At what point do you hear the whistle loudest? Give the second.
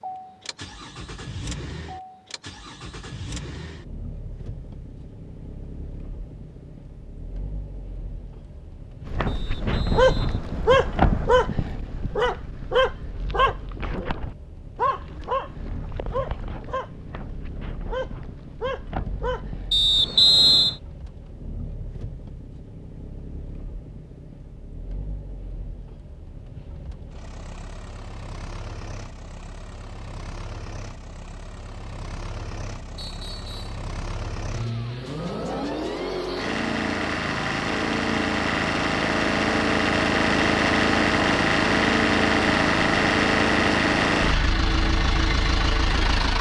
20 s.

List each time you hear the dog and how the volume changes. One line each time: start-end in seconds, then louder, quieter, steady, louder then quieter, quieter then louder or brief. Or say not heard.
9.1-19.9 quieter.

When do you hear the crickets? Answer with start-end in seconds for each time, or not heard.
not heard.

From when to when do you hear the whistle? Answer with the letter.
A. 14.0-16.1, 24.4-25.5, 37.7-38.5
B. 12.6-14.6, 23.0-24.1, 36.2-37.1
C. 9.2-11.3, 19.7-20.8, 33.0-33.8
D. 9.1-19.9
C.